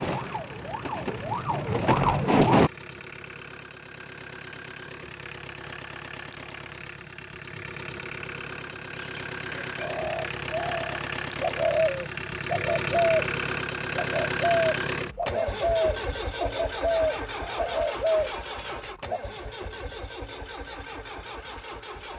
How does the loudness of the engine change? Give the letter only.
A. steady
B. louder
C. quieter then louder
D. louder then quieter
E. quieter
D.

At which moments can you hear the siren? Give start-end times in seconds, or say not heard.
0.0-2.7.